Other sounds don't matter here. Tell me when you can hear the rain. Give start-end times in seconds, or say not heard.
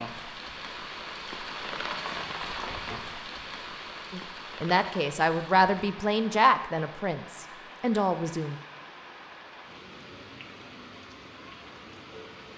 0.0-12.5.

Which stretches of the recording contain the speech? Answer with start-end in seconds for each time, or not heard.
4.1-8.6.